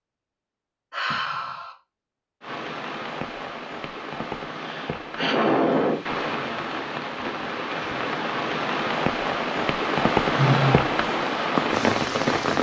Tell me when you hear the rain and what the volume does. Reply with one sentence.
You can hear the rain from 2.4 to 12.5 s, getting louder.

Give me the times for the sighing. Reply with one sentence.
You can hear the sighing from 0.9 to 1.8 s, from 4.5 to 6.0 s and from 10.3 to 11.0 s.